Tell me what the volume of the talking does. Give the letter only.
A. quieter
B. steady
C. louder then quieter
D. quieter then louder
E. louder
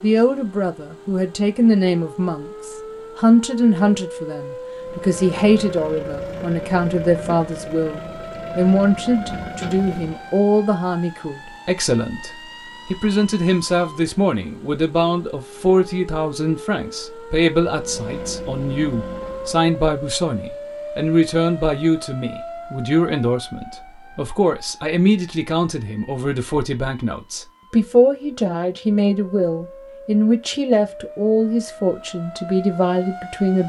B.